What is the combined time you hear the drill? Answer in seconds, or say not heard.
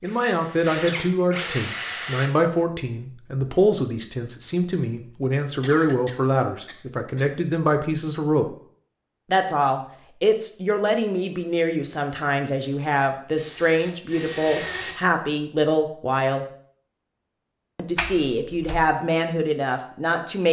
4 s.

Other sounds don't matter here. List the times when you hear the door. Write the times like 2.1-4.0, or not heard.
17.9-18.8.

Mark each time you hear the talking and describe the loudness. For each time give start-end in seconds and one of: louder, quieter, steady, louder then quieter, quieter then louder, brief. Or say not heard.
0.0-8.6 steady
9.3-16.4 steady
17.8-20.4 brief.